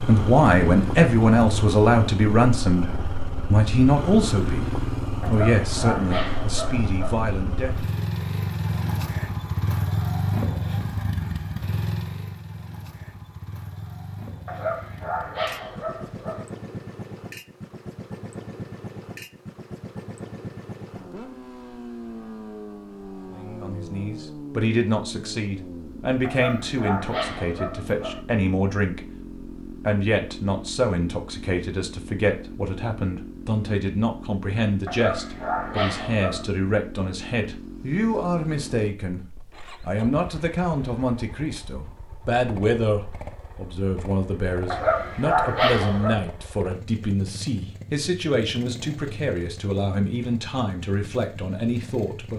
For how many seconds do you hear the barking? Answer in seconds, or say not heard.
9 s.